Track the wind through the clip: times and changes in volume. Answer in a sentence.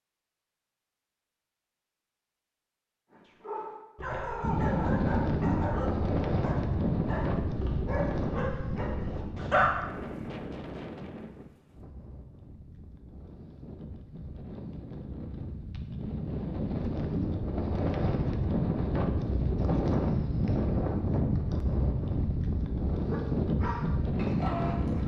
You can hear the wind from 4.4 to 25.0 s, getting quieter then louder.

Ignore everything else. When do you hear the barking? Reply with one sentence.
You can hear the barking from 3.1 to 9.8 s and from 22.9 to 25.0 s.